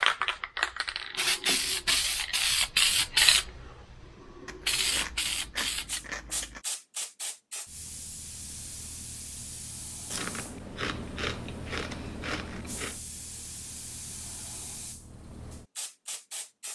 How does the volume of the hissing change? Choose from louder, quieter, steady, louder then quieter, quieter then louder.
quieter.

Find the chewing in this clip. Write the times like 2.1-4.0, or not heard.
4.5-6.7, 10.1-13.0.